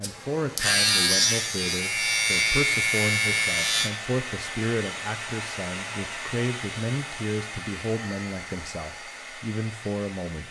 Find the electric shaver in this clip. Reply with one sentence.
The electric shaver can be heard from 0.0 to 3.9 s.